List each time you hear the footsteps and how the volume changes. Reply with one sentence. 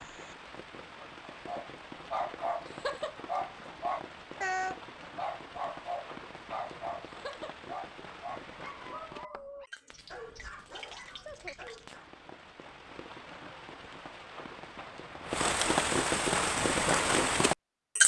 You can't hear the footsteps here.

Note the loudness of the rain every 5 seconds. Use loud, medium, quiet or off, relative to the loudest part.
quiet, quiet, quiet, loud.